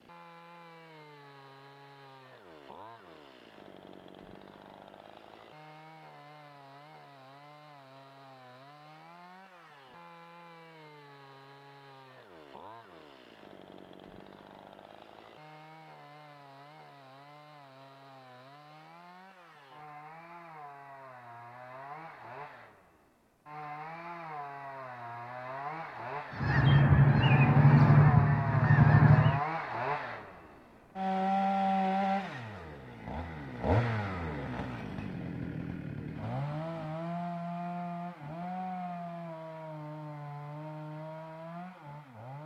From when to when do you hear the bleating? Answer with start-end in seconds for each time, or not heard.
not heard.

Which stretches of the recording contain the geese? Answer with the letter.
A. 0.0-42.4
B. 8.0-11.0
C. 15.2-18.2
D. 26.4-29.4
D.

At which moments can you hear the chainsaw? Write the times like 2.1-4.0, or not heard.
0.0-42.4.